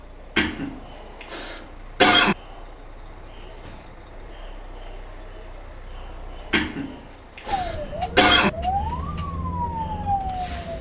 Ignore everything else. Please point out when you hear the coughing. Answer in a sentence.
The coughing can be heard from 0.3 to 2.4 s and from 6.5 to 8.5 s.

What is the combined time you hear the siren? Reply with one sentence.
You can hear the siren for 3 seconds altogether.